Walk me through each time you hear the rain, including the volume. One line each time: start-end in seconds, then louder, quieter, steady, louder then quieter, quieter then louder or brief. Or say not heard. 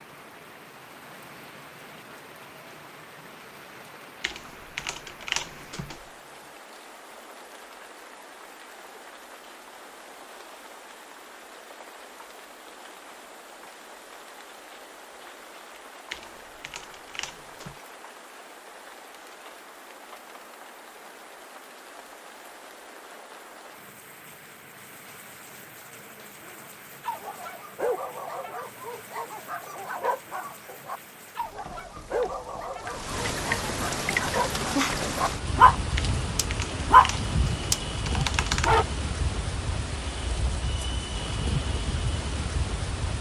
0.0-43.1 louder.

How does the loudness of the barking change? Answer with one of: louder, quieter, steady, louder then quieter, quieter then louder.
louder.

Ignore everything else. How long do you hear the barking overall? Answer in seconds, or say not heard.
12 s.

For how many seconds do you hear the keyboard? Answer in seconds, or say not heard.
6 s.